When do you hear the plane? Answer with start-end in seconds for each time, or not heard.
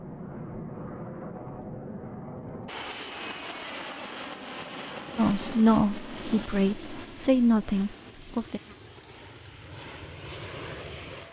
0.0-11.2.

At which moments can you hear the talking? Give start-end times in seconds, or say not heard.
5.2-8.6.